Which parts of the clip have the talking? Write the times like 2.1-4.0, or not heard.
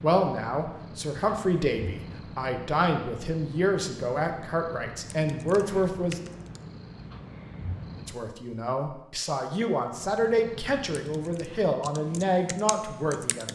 0.0-6.2, 8.0-13.4.